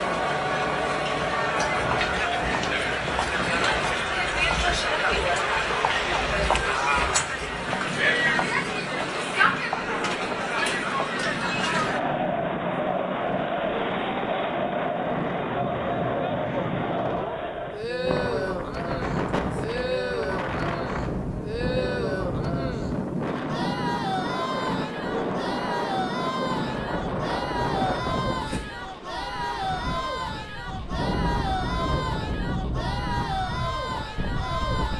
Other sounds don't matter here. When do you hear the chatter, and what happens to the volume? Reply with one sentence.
You can hear the chatter from 0.0 to 34.9 s, getting quieter.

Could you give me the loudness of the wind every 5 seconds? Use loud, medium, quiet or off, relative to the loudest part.
medium, medium, loud, loud, loud, loud, loud.